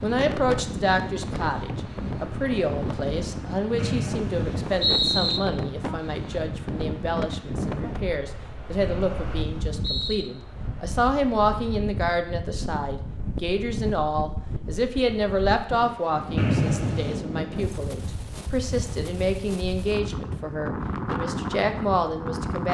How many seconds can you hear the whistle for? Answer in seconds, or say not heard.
4 s.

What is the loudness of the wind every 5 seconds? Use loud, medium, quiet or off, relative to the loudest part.
loud, loud, medium, loud, loud.